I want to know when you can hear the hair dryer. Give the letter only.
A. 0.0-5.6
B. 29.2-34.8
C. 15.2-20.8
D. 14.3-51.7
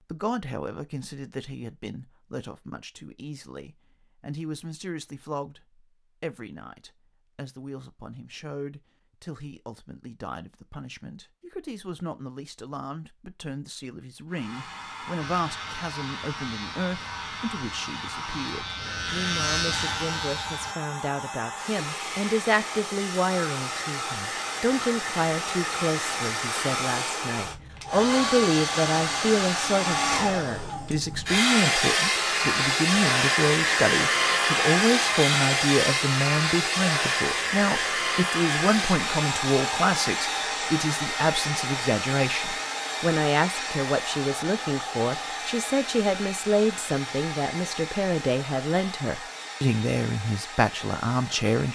D.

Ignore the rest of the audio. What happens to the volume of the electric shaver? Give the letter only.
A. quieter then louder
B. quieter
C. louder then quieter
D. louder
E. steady
D.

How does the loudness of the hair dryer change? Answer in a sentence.
The volume of the hair dryer goes up, then down.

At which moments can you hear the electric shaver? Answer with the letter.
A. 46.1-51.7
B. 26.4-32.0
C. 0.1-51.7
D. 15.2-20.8
D.